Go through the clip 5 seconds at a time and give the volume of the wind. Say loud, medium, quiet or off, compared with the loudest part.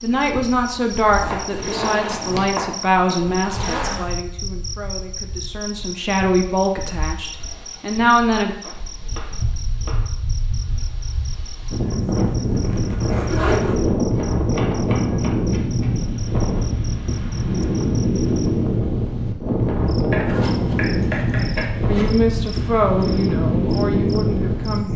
quiet, quiet, loud, loud, loud.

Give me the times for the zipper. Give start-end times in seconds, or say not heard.
1.5-4.0, 11.9-13.9, 20.2-22.1.